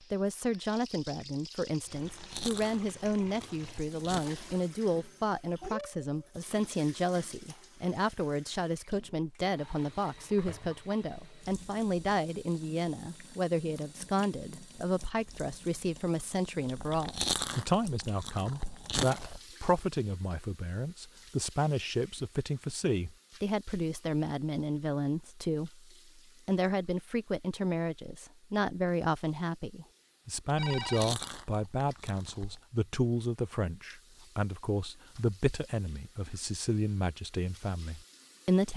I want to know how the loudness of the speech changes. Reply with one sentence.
The loudness of the speech stays about the same.